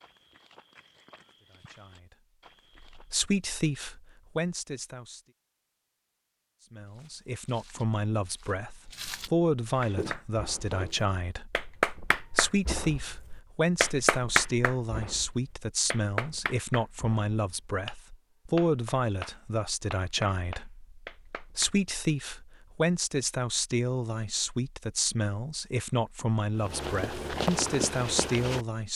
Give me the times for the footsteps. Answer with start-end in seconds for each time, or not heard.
0.0-3.1, 6.8-11.1, 26.6-28.6.